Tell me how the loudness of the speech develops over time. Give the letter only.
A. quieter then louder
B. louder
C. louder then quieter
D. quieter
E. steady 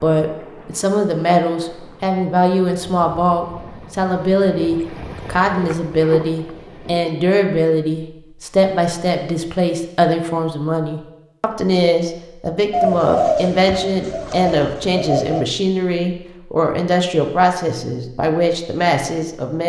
E.